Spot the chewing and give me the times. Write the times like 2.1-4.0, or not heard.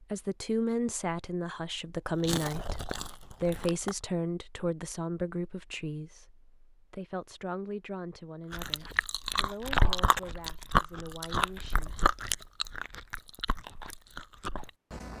2.0-4.0, 8.5-15.1.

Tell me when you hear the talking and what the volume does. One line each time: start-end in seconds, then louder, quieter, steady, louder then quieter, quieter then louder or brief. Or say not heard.
0.0-11.9 quieter.